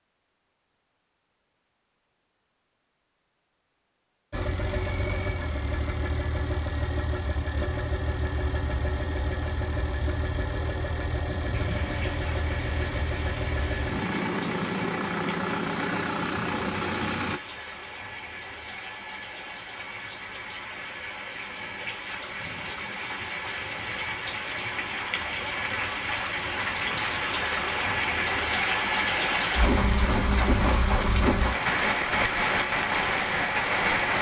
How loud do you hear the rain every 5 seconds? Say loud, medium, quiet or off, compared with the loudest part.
off, off, quiet, quiet, medium, loud, loud.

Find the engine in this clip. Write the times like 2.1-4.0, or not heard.
4.3-17.4.